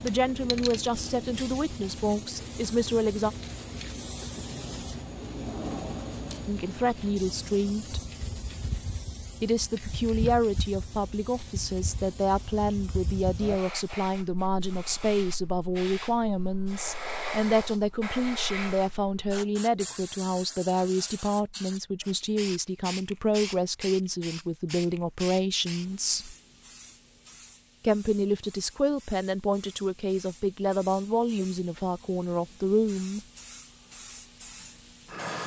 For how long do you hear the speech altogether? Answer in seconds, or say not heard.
27 s.